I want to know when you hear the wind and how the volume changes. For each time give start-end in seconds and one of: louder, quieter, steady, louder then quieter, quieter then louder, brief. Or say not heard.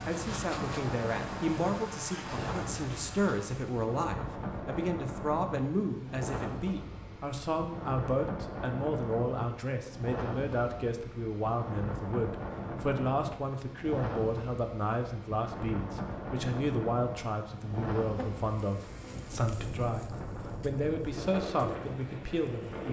0.0-22.8 steady.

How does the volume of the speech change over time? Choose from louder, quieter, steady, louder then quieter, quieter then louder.
steady.